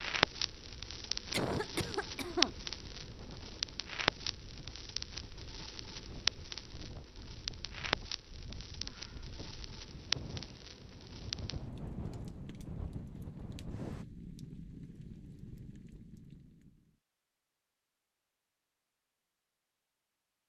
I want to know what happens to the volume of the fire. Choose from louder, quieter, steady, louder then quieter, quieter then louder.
quieter.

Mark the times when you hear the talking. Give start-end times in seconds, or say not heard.
not heard.